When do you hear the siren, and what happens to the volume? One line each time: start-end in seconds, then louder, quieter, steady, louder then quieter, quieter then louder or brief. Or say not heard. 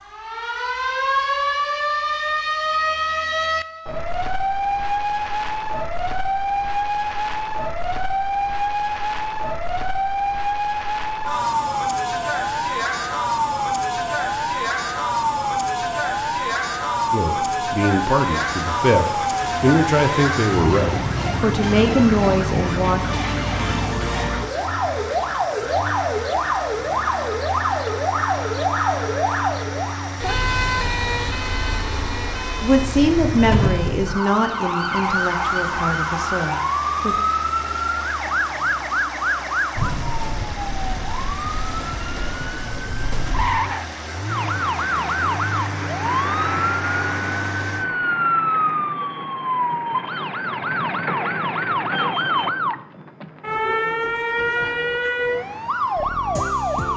0.0-56.9 steady.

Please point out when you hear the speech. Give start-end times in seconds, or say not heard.
17.1-23.0, 32.6-37.1.